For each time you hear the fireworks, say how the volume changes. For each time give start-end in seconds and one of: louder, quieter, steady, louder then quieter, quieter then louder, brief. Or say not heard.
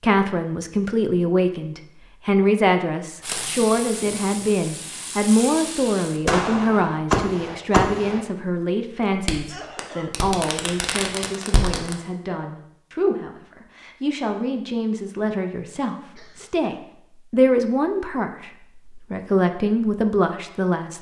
3.2-8.2 louder
9.2-11.9 brief.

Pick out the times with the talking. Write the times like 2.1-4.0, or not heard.
0.0-20.9.